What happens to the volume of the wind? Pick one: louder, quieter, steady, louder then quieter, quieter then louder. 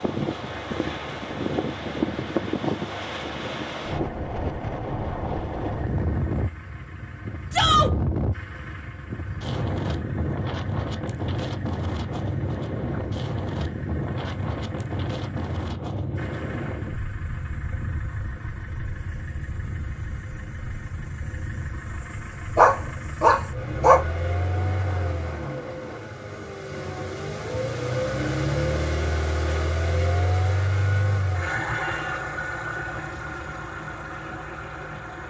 quieter.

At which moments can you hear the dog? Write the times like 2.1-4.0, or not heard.
22.6-24.1.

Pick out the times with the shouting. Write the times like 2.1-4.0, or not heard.
7.5-7.9.